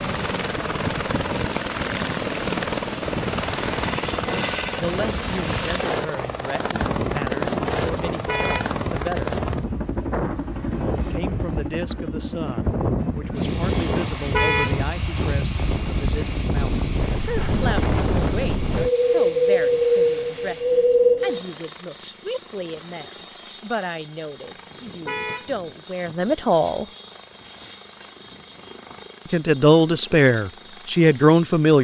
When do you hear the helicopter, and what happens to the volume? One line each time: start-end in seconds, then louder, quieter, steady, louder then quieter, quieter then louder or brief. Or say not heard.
0.0-31.7 quieter.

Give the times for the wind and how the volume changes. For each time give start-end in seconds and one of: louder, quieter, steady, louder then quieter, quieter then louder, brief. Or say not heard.
0.0-21.4 louder.